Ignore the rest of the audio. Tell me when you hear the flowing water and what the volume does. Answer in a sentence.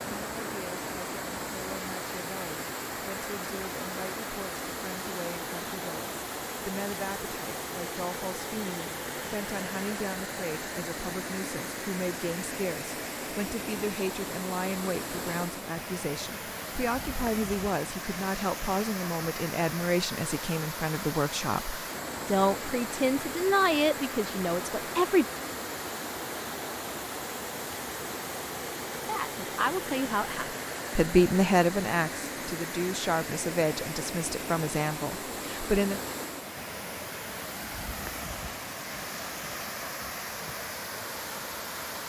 The flowing water can be heard from 0.0 to 42.0 s, at a steady volume.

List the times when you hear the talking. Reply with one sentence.
You can hear the talking from 0.0 to 25.2 s and from 28.9 to 36.0 s.